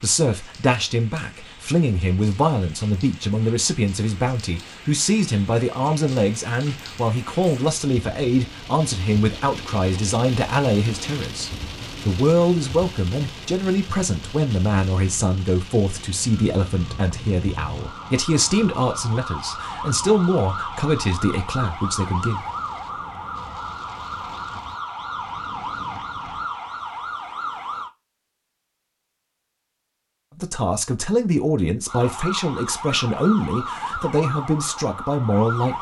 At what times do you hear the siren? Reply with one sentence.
You can hear the siren from 16.3 to 27.9 s and from 31.9 to 35.7 s.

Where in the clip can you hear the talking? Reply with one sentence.
The talking can be heard from 0.0 to 22.4 s and from 30.4 to 35.7 s.